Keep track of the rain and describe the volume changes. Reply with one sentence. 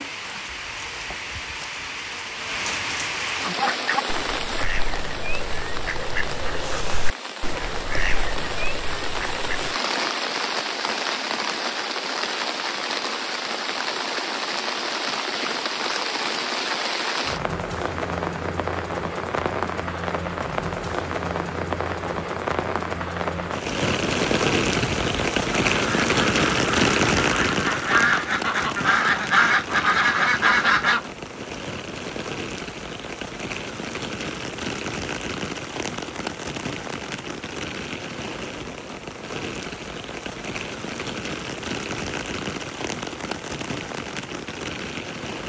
The loudness of the rain goes up, then down.